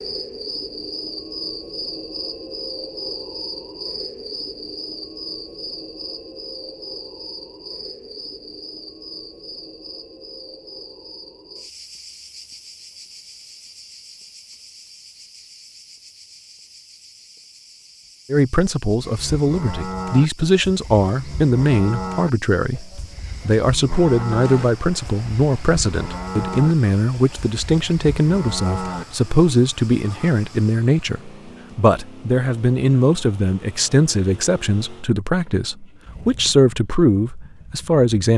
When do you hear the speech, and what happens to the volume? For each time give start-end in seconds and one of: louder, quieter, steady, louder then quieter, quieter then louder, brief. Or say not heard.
18.3-38.3 steady.